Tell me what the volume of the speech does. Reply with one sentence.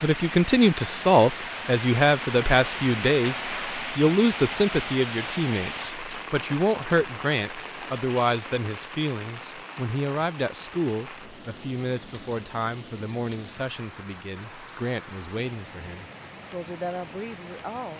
The volume of the speech goes down.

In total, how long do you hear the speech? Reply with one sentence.
The speech can be heard for 18 seconds in total.